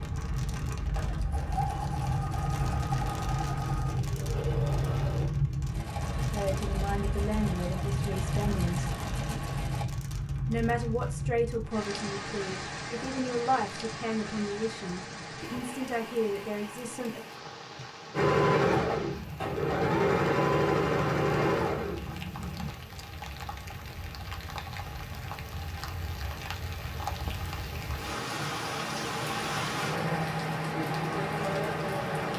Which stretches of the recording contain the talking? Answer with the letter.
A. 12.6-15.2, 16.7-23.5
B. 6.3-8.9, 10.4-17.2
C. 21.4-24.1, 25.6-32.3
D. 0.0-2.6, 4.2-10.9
B.